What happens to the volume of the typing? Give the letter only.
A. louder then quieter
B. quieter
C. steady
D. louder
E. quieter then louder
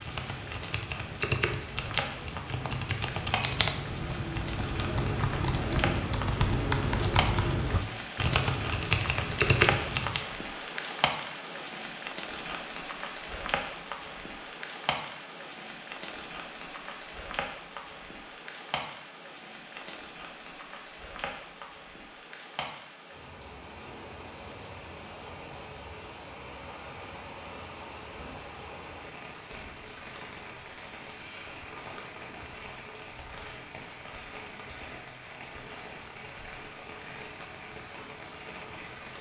D.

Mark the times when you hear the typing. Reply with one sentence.
The typing can be heard from 0.0 to 10.2 s.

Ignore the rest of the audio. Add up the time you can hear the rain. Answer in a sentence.
The rain can be heard for 39 seconds in total.